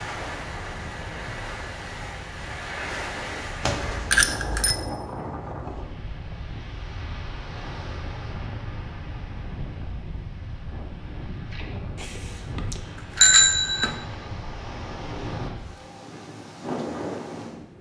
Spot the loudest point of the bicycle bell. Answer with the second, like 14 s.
13 s.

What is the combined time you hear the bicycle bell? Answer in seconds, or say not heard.
3 s.